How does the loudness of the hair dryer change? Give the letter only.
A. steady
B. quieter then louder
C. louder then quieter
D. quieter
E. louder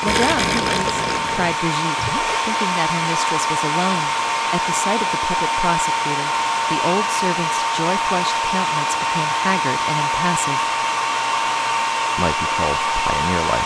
A.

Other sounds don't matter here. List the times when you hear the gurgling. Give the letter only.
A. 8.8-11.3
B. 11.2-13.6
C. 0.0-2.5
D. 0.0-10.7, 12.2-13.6
C.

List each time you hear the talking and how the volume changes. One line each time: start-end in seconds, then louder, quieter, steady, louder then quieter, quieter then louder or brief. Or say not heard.
0.0-10.7 steady
12.2-13.6 brief.